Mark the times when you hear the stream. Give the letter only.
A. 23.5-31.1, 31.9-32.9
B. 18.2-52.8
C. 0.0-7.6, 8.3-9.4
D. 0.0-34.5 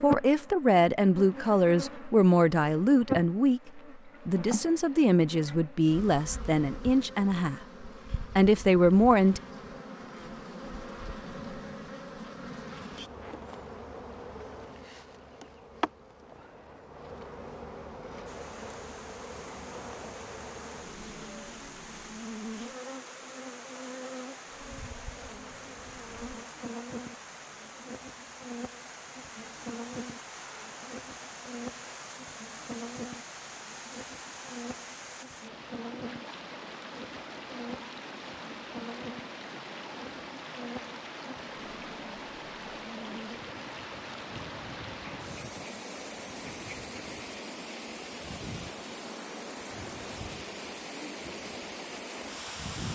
B.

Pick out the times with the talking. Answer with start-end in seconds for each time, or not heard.
0.0-7.6, 8.3-9.4.